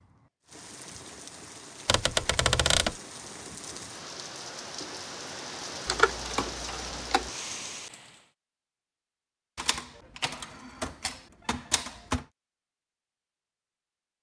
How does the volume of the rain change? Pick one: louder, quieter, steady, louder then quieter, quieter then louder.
louder.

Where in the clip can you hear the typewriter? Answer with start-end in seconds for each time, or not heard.
1.9-3.0, 5.8-7.3, 9.6-12.2.